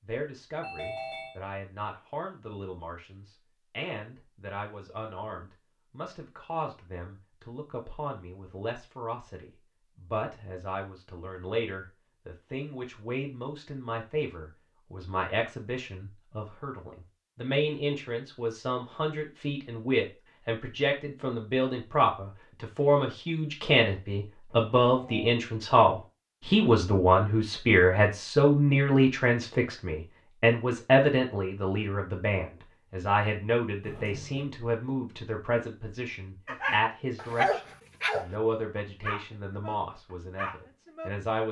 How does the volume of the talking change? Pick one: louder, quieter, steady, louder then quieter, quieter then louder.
louder then quieter.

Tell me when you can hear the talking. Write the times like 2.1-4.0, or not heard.
0.0-41.4.